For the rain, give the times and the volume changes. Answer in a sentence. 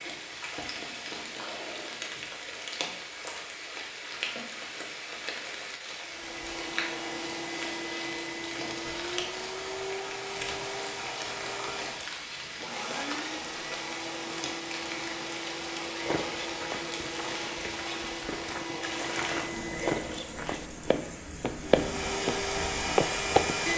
The rain can be heard from 0.0 to 23.7 s, at a steady volume.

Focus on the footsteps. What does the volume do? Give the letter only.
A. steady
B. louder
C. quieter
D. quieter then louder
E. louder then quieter
B.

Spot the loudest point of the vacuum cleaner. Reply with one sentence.
The volume of the vacuum cleaner peaks at 23 seconds.